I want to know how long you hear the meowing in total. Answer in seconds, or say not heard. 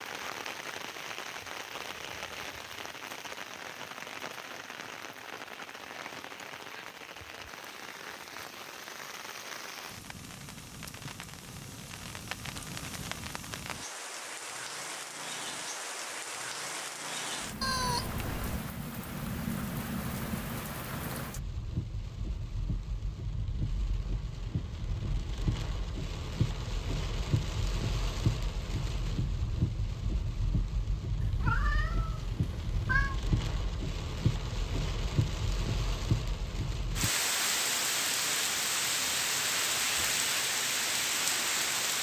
3 s.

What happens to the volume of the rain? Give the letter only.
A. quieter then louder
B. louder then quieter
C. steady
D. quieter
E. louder
E.